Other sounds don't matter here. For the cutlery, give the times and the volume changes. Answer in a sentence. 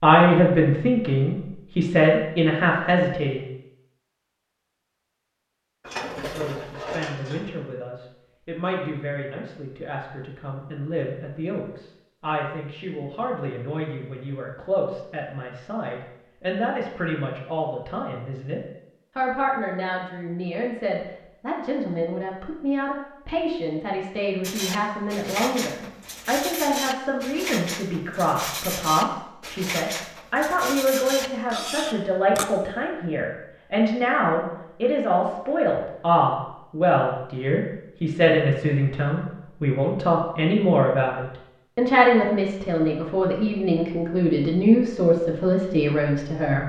The cutlery can be heard briefly from 5.8 to 7.5 s; and from 24.4 to 32.5 s, at a steady volume.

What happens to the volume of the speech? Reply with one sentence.
The loudness of the speech goes down, then up.